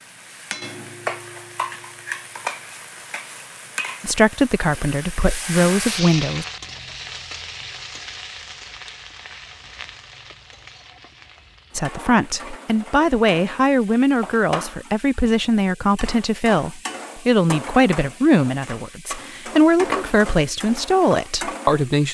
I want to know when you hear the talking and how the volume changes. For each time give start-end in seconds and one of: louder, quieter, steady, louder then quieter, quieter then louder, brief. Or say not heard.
4.0-6.5 brief
11.8-22.0 steady.